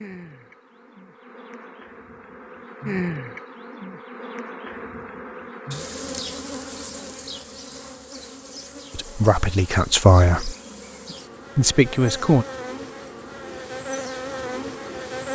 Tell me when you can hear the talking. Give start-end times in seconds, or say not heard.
8.9-10.6, 11.6-12.4.